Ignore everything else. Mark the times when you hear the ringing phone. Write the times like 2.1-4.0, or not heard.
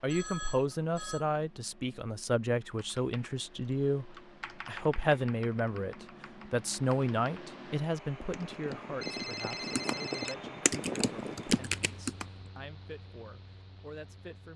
0.1-1.2, 9.0-10.3.